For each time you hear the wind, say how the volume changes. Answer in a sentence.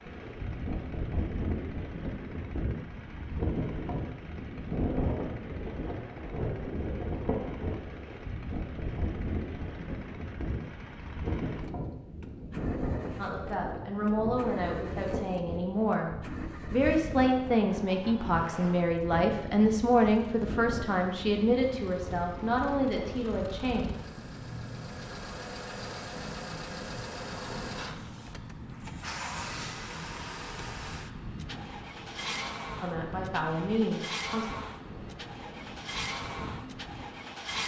The wind can be heard from 0.0 to 37.6 s, getting quieter.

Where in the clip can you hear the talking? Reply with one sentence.
The talking can be heard from 13.2 to 16.1 s, from 16.7 to 23.9 s and from 32.8 to 34.5 s.